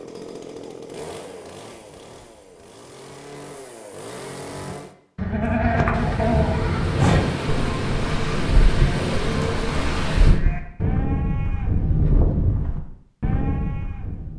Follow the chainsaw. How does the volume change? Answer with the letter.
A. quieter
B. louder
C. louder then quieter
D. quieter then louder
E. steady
D.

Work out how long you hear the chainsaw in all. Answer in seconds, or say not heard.
5 s.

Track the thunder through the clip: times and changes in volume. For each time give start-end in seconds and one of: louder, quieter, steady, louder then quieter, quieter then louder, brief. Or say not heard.
5.9-10.4 steady.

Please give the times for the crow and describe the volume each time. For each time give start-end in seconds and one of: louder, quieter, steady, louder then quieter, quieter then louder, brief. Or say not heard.
not heard.